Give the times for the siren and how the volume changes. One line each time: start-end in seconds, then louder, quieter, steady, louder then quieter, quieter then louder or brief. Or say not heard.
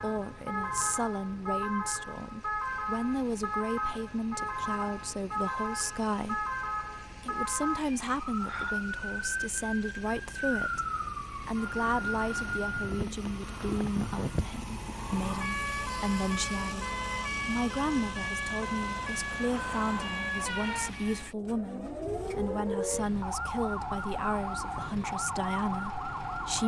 0.0-26.6 steady.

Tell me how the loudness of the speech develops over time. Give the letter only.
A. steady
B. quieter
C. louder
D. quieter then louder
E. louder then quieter
A.